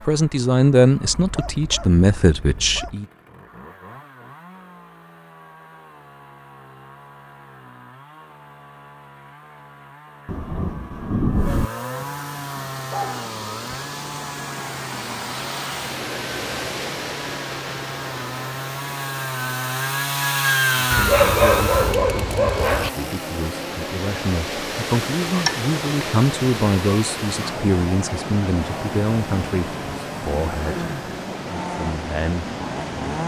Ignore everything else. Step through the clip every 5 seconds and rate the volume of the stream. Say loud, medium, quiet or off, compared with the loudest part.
off, off, medium, loud, loud, loud, loud.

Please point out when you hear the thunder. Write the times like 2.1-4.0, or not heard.
10.2-11.7.